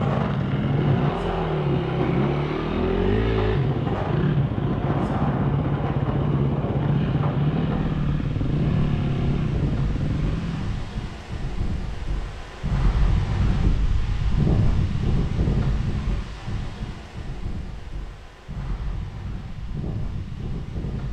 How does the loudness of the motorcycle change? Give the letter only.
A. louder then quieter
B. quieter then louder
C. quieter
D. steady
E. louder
D.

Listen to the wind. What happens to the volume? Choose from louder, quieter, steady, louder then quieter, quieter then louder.
louder then quieter.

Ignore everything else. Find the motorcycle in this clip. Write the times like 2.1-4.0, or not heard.
0.0-10.8.